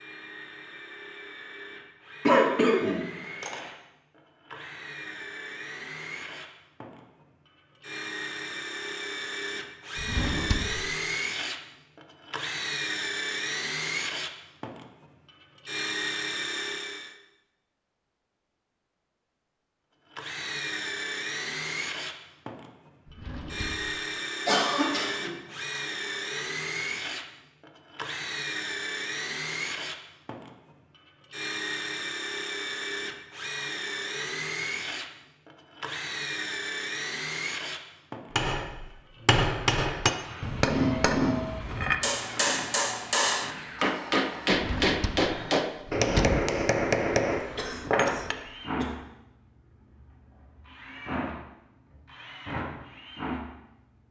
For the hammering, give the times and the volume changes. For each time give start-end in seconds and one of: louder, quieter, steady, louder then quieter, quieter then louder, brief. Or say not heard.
38.3-48.4 steady.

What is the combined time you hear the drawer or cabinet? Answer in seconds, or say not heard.
4 s.